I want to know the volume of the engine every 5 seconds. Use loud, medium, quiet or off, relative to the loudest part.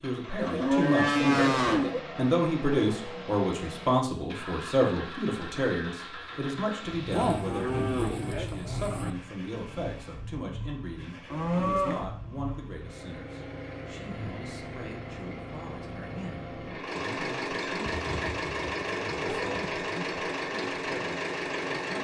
medium, medium, medium, loud, loud.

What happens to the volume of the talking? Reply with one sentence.
The loudness of the talking goes down.